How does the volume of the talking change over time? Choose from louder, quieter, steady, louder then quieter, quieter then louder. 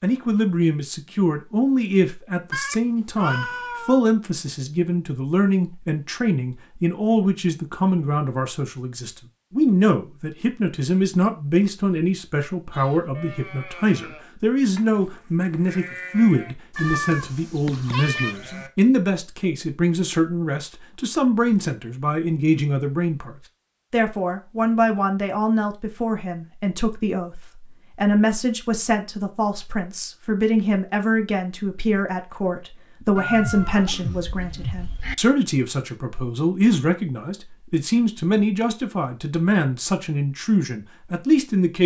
steady.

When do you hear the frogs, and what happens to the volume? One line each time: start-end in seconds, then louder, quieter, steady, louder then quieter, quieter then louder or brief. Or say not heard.
not heard.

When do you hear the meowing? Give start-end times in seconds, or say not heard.
2.5-4.0, 16.8-18.4, 33.1-35.1.